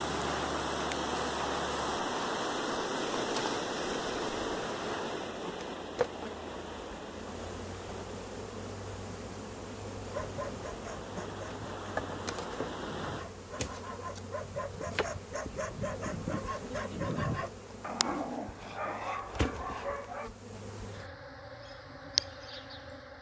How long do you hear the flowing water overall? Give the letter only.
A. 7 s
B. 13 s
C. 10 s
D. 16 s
B.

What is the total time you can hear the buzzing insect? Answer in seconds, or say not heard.
23 s.